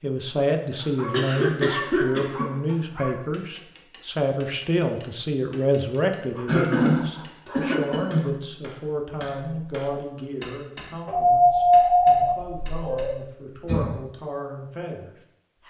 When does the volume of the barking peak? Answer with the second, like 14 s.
12 s.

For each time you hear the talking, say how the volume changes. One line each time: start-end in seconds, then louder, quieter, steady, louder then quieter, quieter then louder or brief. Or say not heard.
0.0-15.6 quieter.